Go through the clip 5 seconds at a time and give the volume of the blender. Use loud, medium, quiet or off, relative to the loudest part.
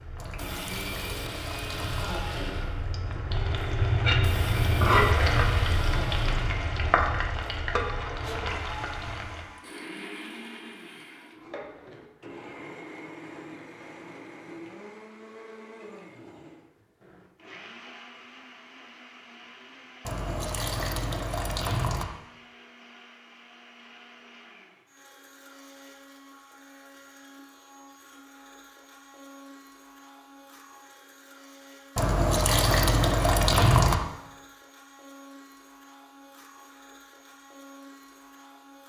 loud, loud, medium, medium, quiet, quiet, quiet, quiet.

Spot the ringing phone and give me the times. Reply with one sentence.
You can't hear the ringing phone here.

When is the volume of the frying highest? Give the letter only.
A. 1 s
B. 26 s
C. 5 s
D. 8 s
C.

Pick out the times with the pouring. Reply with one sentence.
You can hear the pouring from 0.1 to 2.2 s, from 20.1 to 22.1 s and from 31.9 to 34.0 s.